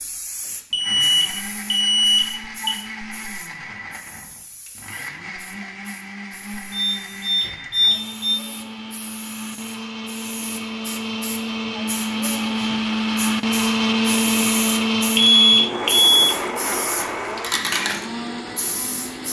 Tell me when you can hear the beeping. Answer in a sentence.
The beeping can be heard from 0.7 to 2.7 s, from 6.7 to 8.4 s and from 15.2 to 16.4 s.